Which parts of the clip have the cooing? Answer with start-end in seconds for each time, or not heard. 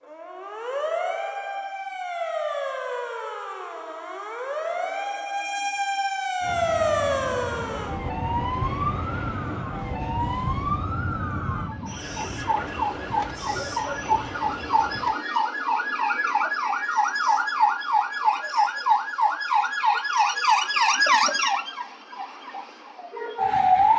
not heard.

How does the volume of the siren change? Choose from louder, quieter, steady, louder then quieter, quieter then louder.
louder.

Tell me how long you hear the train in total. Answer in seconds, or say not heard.
9 s.